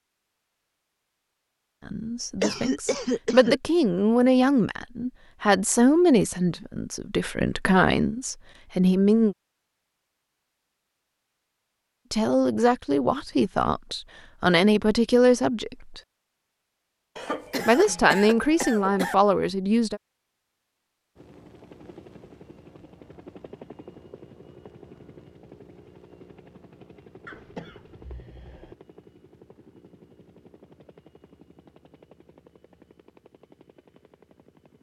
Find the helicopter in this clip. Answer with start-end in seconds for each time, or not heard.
21.1-34.7.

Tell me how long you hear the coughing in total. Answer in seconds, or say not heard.
5 s.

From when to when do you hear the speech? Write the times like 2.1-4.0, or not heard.
1.9-9.3, 12.1-16.0, 17.6-20.0.